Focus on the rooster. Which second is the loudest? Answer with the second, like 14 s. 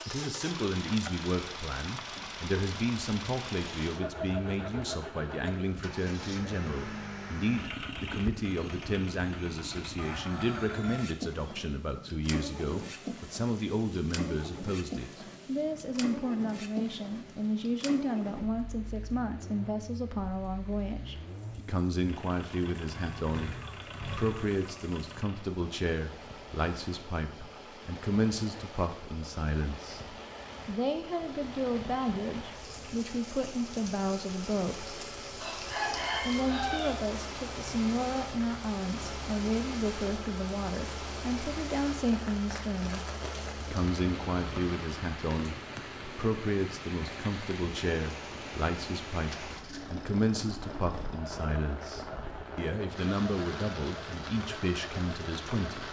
36 s.